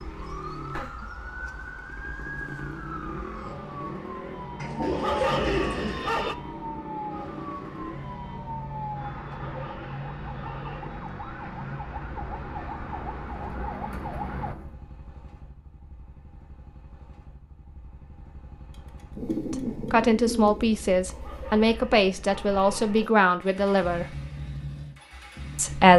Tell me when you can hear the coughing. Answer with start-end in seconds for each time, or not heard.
not heard.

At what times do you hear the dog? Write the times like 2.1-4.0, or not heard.
4.8-6.3, 9.2-10.9, 21.0-23.1.